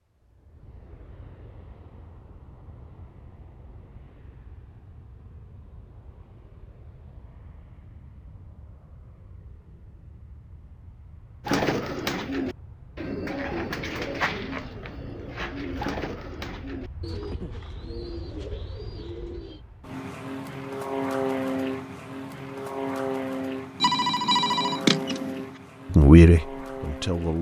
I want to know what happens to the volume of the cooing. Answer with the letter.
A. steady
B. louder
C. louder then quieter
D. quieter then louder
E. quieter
E.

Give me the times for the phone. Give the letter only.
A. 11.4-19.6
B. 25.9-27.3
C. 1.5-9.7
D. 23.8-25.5
D.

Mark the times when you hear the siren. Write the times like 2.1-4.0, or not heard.
not heard.